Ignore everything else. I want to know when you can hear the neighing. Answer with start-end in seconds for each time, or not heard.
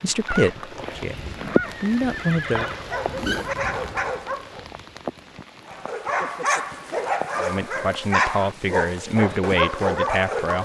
0.2-2.9.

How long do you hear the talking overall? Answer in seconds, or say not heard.
6 s.